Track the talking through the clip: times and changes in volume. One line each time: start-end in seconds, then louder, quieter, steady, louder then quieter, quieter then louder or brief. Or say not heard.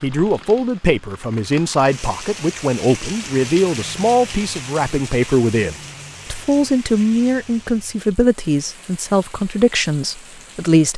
0.0-10.9 steady.